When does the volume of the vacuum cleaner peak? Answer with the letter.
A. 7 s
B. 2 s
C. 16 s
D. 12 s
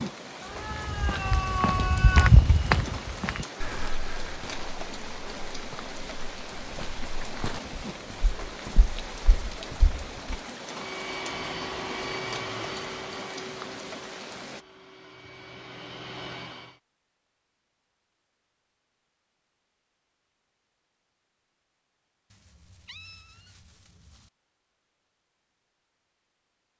D.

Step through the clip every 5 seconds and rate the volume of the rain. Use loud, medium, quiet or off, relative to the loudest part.
loud, loud, loud, off, off, off.